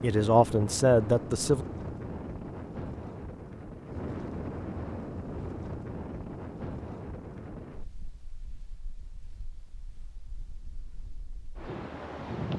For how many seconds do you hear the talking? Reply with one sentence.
The talking can be heard for 2 seconds in total.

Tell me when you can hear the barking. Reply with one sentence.
The barking can't be heard in this clip.